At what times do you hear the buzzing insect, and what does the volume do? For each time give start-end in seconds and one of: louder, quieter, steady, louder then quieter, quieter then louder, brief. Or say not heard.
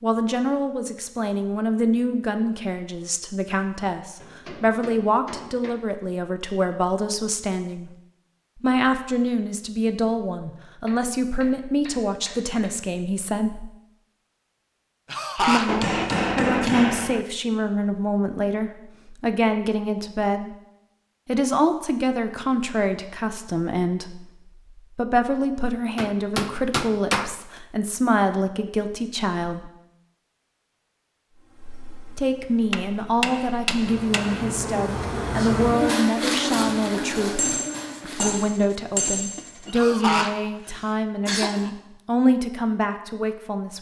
31.3-38.4 louder then quieter.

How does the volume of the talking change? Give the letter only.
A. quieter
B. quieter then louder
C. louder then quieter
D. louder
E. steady
E.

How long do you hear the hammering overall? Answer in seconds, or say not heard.
11 s.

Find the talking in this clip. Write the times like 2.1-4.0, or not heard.
0.0-8.0, 8.6-13.7, 15.3-20.6, 21.2-29.7, 32.1-43.7.